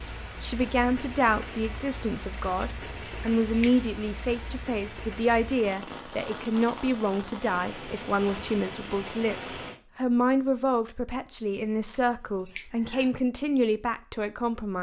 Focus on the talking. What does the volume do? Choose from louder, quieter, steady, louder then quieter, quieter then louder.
steady.